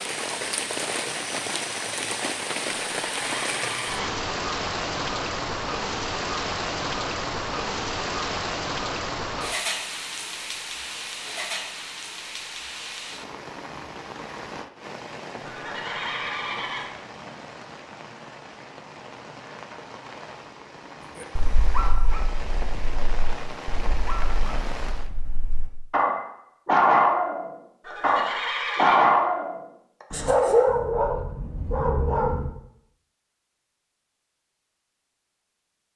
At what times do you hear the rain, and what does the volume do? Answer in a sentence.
You can hear the rain from 0.0 to 25.1 s, getting quieter.